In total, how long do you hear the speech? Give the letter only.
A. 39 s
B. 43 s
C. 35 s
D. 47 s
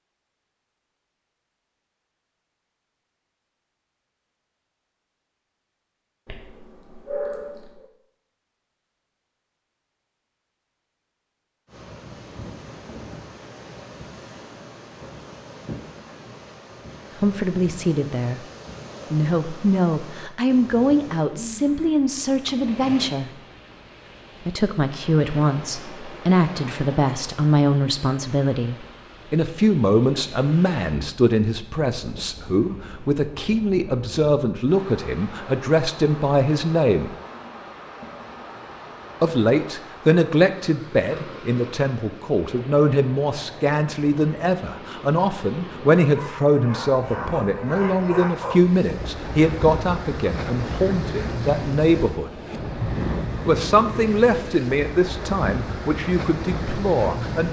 C.